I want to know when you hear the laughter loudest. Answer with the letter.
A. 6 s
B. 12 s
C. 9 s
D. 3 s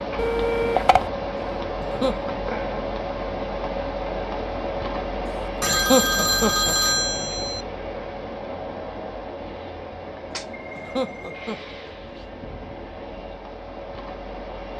A.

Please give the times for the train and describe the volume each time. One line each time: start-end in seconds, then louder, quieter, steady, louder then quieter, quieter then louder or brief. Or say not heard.
0.0-14.7 quieter.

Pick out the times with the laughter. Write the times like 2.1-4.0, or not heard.
1.8-2.2, 5.7-6.8, 10.8-11.8.